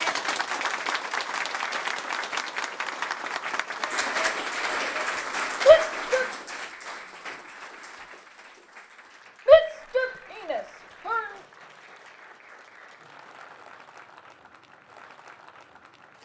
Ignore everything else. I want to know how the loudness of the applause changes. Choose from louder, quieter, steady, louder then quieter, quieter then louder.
quieter.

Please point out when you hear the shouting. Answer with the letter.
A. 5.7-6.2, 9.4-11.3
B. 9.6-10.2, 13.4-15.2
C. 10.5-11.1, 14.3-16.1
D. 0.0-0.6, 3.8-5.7
A.